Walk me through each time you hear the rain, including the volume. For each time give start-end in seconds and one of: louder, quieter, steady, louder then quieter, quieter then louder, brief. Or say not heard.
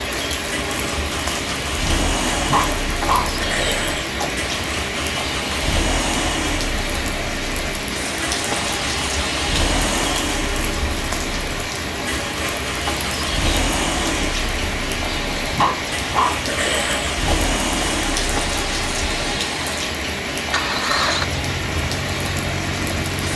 0.0-23.3 steady.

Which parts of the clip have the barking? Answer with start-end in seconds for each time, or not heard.
2.5-4.2, 15.5-17.2.